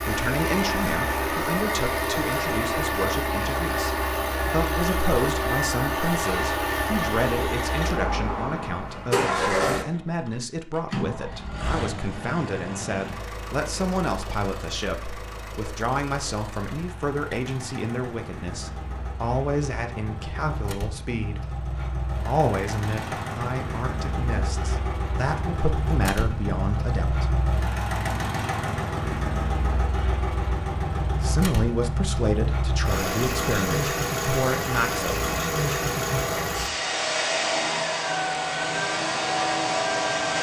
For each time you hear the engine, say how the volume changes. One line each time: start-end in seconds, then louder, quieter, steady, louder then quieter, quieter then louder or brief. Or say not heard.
0.0-40.3 quieter then louder.